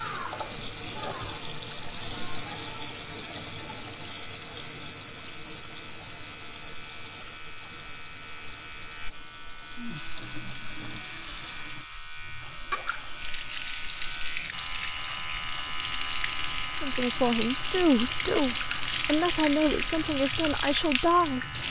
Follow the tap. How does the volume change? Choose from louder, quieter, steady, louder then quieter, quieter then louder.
quieter then louder.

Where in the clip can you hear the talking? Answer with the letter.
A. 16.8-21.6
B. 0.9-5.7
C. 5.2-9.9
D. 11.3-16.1
A.